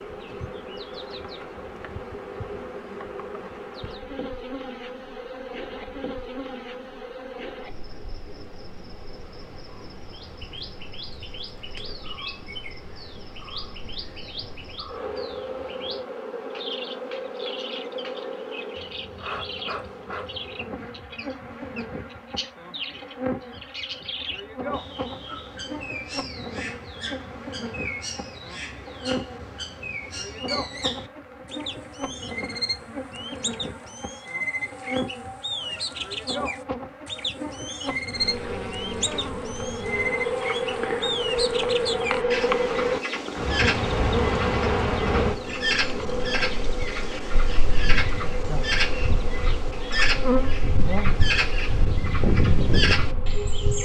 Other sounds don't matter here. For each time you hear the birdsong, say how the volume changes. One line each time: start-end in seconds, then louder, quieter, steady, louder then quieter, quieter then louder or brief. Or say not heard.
10.1-53.8 louder.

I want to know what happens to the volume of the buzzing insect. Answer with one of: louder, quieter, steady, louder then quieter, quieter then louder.
louder.